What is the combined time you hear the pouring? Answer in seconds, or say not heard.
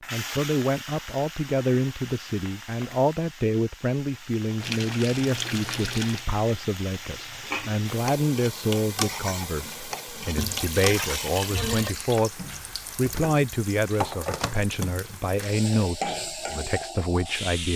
3 s.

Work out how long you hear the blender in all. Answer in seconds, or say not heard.
not heard.